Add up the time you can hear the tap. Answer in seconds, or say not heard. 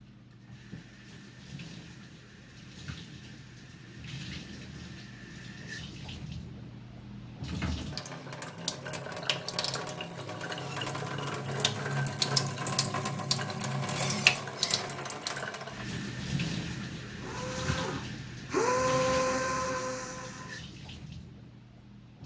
22 s.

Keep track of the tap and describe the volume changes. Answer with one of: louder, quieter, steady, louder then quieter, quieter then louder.
louder then quieter.